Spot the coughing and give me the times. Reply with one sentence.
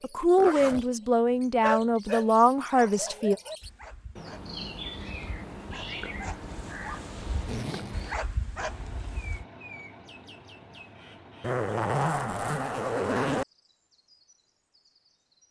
You can't hear the coughing here.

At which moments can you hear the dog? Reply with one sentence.
You can hear the dog from 1.6 to 9.4 s.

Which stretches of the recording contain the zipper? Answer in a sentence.
The zipper can be heard from 0.3 to 0.8 s, from 7.4 to 8.1 s and from 11.4 to 13.4 s.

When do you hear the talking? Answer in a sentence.
The talking can be heard from 0.0 to 3.4 s.